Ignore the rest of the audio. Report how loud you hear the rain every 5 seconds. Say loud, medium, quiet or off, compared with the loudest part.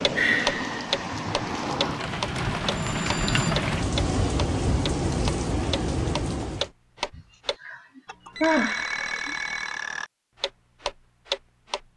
loud, loud, off.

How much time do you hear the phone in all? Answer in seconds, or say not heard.
2 s.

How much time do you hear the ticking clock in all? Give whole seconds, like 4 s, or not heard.
12 s.